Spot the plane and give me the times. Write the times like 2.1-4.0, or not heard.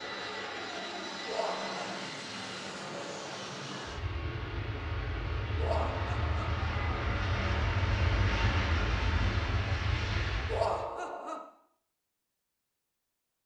0.0-10.9.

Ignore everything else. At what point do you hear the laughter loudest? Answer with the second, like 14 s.
11 s.